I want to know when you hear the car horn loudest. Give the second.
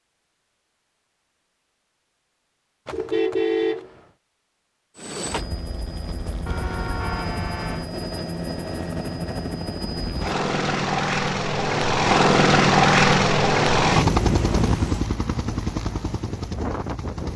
4 s.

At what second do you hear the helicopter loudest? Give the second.
13 s.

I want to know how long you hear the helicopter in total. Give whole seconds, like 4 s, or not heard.
12 s.